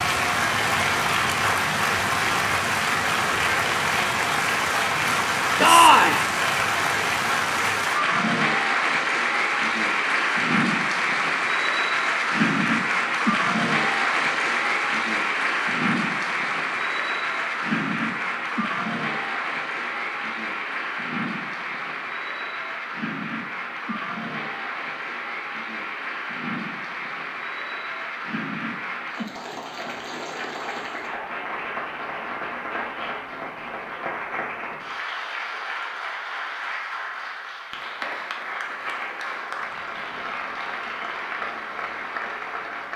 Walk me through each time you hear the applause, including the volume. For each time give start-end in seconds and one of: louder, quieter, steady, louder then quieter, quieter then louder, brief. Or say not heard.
0.0-42.9 quieter.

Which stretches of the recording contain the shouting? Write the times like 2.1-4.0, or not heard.
5.5-6.2.